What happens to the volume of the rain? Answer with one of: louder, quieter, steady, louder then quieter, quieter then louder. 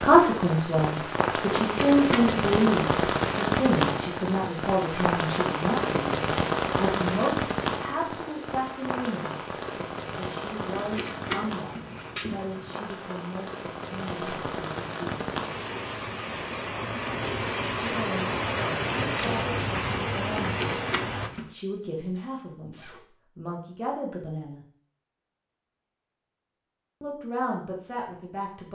quieter then louder.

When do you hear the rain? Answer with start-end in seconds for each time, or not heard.
0.0-21.3.